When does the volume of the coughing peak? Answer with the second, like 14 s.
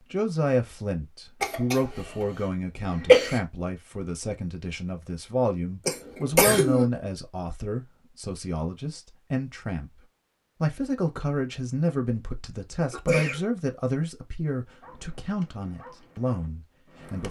3 s.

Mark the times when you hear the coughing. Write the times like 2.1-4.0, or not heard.
1.4-2.0, 3.0-3.4, 5.8-6.8, 12.9-13.4.